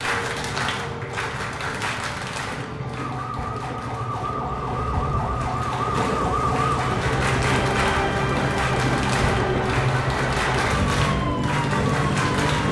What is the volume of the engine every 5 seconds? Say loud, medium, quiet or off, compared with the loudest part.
medium, loud, loud.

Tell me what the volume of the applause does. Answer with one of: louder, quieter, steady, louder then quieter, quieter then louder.
quieter then louder.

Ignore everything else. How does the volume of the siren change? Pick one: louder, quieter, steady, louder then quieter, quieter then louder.
louder.